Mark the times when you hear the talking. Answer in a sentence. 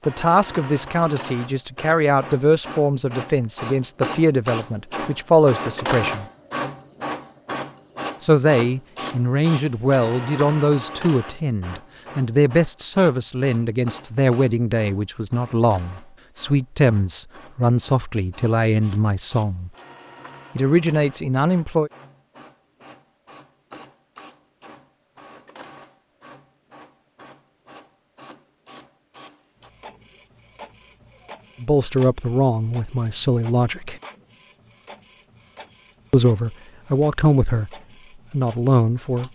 You can hear the talking from 0.1 to 6.2 s, from 8.2 to 19.7 s, from 20.6 to 21.9 s, from 31.6 to 34.0 s and from 36.1 to 39.3 s.